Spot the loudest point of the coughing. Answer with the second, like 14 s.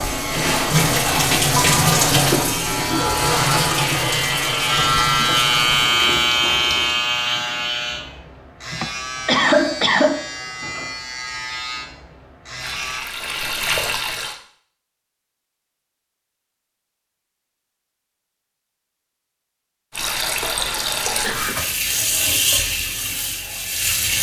9 s.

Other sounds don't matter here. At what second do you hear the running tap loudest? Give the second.
2 s.